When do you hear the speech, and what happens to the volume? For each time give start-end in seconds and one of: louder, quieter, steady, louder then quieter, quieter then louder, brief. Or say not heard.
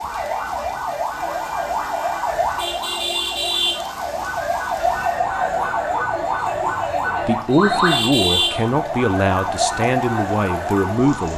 7.2-11.3 steady.